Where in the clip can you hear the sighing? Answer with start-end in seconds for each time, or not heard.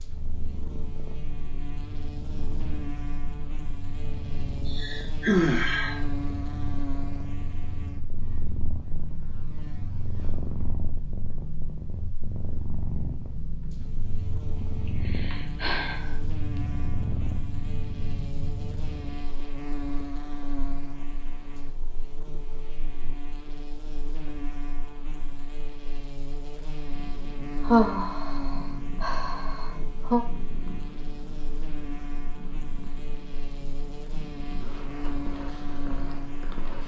4.7-6.0, 14.6-16.1, 27.6-30.2.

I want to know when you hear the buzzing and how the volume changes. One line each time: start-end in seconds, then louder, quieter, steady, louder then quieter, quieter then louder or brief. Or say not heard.
0.0-36.8 quieter then louder.